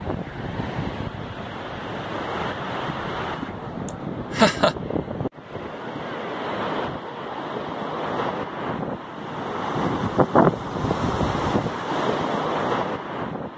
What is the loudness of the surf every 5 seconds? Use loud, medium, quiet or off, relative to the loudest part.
medium, medium, loud.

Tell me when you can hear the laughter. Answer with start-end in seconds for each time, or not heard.
3.9-4.8.